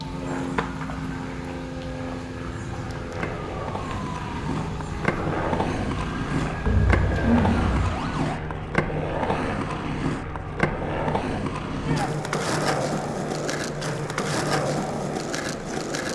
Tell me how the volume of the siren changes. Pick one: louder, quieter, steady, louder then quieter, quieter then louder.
steady.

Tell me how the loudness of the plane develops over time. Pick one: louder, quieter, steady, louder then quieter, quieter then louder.
steady.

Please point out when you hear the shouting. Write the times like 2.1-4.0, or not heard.
11.7-12.2.